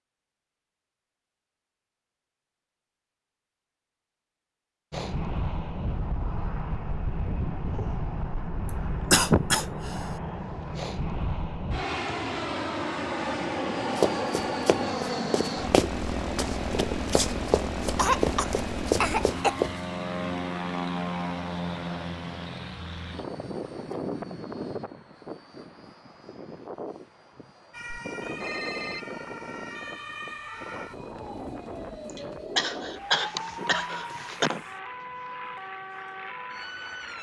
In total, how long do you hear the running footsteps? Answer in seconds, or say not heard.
6 s.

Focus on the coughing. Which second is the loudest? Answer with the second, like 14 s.
9 s.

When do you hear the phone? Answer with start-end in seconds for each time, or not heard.
27.9-29.1.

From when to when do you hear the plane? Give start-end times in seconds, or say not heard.
4.9-37.1.